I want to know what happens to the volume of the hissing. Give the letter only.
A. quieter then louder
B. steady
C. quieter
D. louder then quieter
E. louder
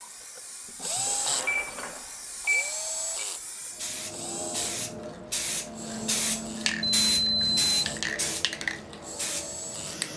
E.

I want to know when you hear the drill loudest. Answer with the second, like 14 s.
1 s.